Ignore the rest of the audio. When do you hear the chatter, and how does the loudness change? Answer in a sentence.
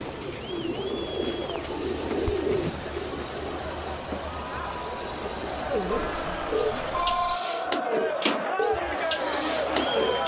You can hear the chatter from 0.0 to 10.2 s, getting louder.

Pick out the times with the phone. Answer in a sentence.
The phone can be heard from 6.0 to 7.4 s.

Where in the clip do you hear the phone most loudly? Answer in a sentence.
The volume of the phone peaks at 7 seconds.